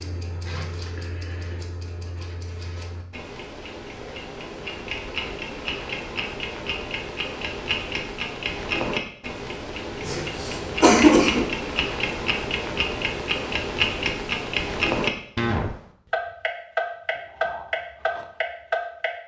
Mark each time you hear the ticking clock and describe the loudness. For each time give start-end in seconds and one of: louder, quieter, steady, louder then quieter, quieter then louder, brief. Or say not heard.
0.0-19.1 louder.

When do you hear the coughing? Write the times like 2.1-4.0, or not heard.
10.0-11.4.